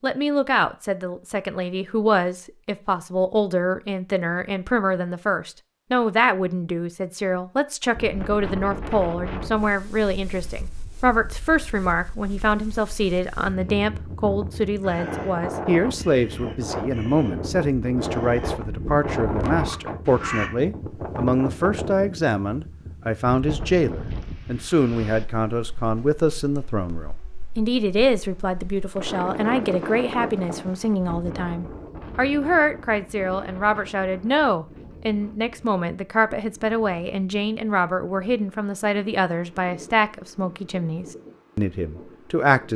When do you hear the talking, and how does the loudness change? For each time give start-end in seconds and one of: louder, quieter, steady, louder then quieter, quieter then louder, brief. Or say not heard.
0.0-42.7 steady.